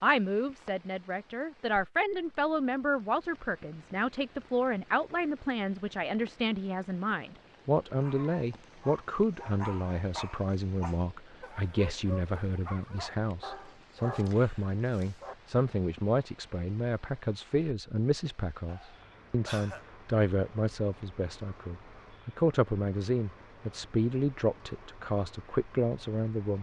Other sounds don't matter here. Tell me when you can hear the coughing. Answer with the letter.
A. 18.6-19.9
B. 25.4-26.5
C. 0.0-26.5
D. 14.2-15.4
A.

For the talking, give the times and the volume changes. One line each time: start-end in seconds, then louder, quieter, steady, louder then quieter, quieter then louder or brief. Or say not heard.
0.0-26.5 steady.